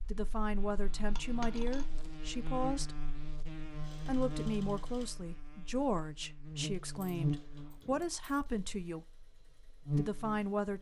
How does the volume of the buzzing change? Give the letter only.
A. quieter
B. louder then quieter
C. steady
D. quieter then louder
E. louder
E.